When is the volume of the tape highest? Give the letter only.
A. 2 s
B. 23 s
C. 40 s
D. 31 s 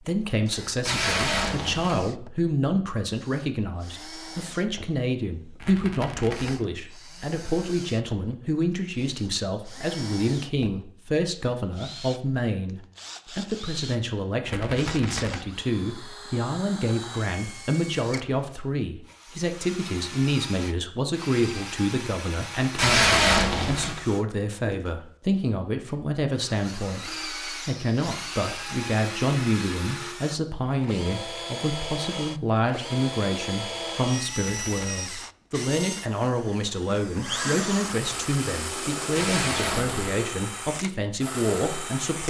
B.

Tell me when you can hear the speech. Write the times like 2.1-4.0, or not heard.
0.0-42.2.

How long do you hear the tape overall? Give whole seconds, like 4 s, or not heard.
3 s.